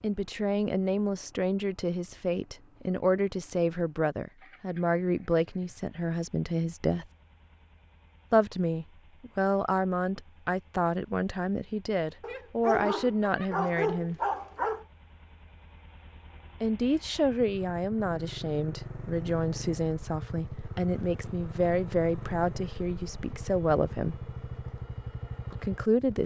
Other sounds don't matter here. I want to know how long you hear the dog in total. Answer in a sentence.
The dog can be heard for 3 seconds in total.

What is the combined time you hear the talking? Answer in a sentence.
The talking can be heard for 21 seconds in total.